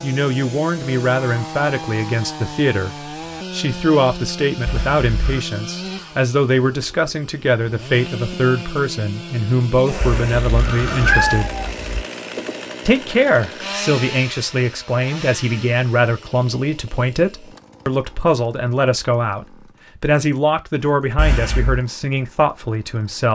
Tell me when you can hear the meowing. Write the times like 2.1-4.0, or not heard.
4.7-5.5, 10.0-12.0, 21.1-21.8.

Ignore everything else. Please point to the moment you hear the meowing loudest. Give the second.
11 s.